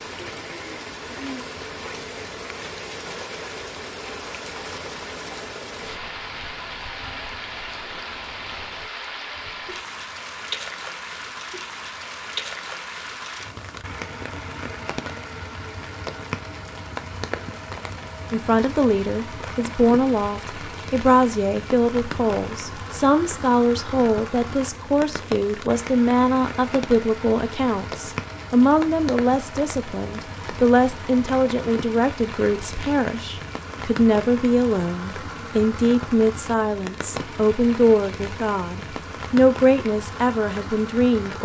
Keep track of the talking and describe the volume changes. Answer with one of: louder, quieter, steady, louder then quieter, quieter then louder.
steady.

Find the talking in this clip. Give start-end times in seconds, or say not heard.
18.3-41.4.